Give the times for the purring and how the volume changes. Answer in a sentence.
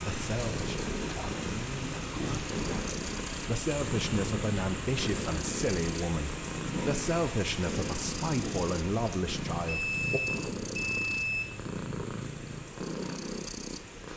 The purring can be heard from 0.0 to 14.1 s, at a steady volume.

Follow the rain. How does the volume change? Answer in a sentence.
The volume of the rain goes down.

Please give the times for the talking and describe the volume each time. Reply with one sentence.
The talking can be heard from 0.0 to 10.2 s, getting louder.